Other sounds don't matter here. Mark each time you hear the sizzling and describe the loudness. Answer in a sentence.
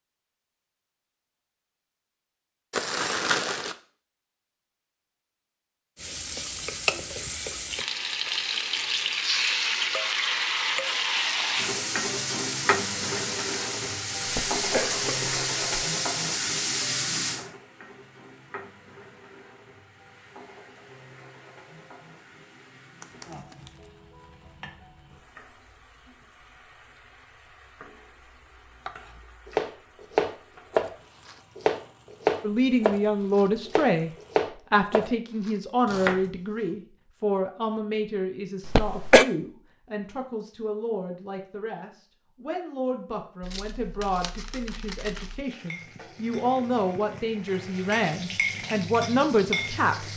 You can hear the sizzling from 6.0 to 34.5 s, getting quieter; and from 45.4 to 50.1 s, getting louder.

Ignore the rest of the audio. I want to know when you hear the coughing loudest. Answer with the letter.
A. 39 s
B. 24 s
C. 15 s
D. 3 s
A.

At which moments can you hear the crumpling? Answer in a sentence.
You can hear the crumpling from 2.7 to 3.8 s, from 23.0 to 23.9 s and from 43.4 to 45.5 s.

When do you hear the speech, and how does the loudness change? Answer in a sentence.
You can hear the speech briefly from 32.4 to 34.1 s; and from 34.7 to 50.1 s, getting quieter then louder.